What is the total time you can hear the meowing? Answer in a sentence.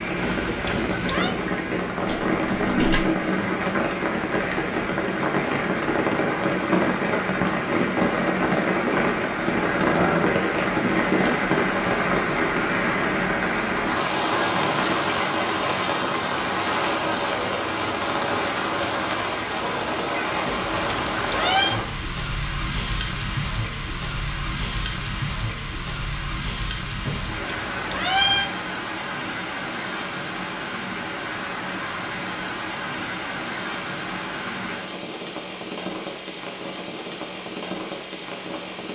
You can hear the meowing for 4 seconds altogether.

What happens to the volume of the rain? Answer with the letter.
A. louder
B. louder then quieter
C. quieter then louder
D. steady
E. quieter
E.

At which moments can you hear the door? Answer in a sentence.
The door can be heard from 2.0 to 3.0 s.